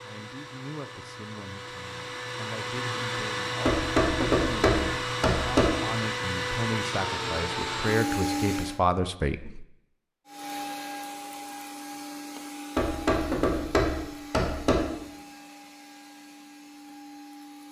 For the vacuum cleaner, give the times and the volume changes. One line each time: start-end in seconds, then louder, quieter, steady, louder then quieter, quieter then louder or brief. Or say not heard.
0.0-8.8 louder
10.2-17.6 quieter.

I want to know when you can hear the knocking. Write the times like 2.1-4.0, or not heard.
3.6-5.7, 12.8-14.8.